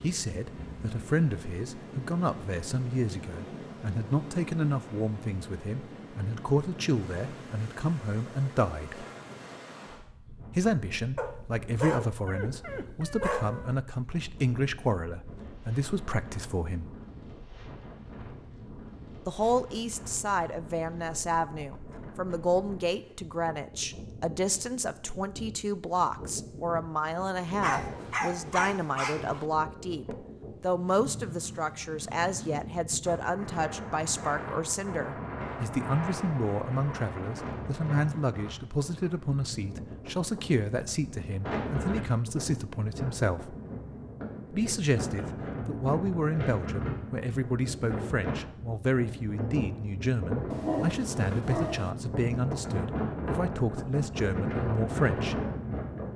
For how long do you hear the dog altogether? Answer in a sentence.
You can hear the dog for 6 seconds altogether.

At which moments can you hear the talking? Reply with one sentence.
The talking can be heard from 0.0 to 9.1 s, from 10.6 to 16.9 s, from 19.2 to 43.5 s and from 44.5 to 55.4 s.